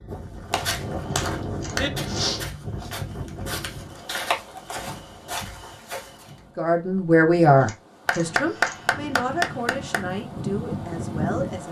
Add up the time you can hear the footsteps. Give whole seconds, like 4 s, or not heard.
6 s.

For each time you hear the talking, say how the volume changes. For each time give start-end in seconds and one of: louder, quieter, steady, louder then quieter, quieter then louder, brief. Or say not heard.
6.5-11.6 quieter.